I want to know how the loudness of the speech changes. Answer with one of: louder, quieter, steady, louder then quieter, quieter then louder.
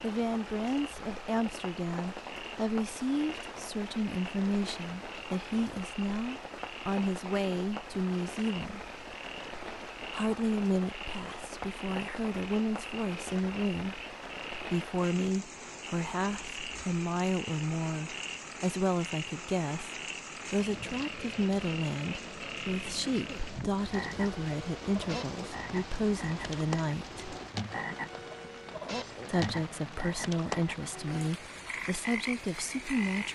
steady.